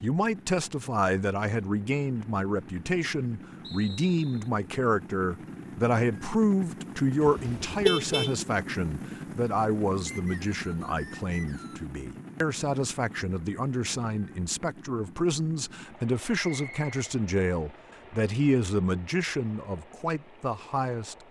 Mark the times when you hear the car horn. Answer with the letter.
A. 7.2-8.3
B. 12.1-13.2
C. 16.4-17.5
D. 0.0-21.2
A.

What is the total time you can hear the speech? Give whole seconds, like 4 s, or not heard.
21 s.